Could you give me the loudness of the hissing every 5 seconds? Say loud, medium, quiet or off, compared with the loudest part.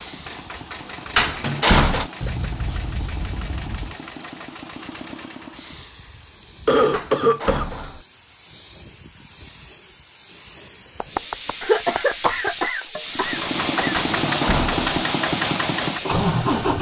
quiet, quiet, loud, loud.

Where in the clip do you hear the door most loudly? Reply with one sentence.
The loudest moment of the door is at 2 seconds.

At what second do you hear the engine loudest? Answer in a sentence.
The loudest moment of the engine is at 16 seconds.